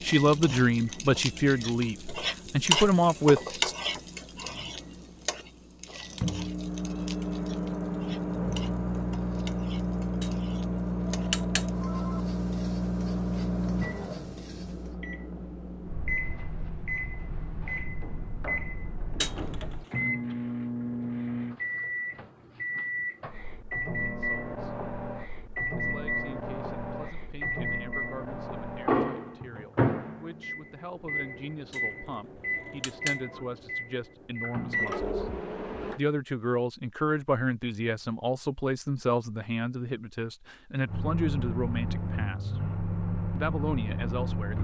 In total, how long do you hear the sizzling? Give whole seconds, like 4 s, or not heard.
15 s.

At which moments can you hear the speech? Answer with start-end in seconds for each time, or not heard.
0.0-3.8, 23.9-24.8, 25.8-35.3, 36.0-42.5, 43.4-44.6.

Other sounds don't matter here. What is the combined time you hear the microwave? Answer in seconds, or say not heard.
40 s.